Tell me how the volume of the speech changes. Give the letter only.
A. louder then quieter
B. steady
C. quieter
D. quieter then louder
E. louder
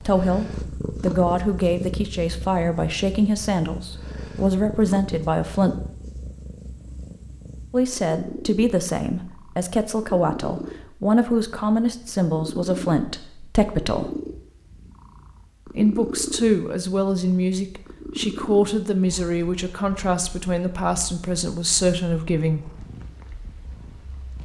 B.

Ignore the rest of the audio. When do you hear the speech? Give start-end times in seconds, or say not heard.
0.0-5.8, 7.7-14.1, 15.7-22.8.